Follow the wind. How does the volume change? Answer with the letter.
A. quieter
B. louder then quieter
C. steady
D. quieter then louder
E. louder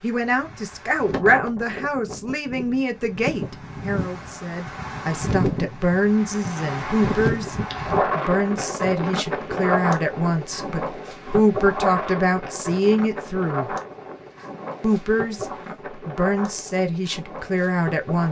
B.